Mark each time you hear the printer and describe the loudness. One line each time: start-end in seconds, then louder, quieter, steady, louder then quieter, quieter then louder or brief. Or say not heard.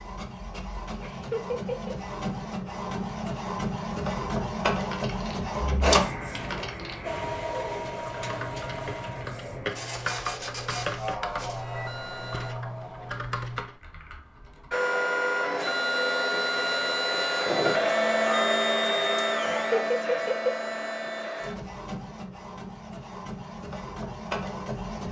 0.0-12.6 louder then quieter
14.7-25.0 quieter.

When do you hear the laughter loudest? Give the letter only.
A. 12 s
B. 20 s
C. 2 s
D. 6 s
B.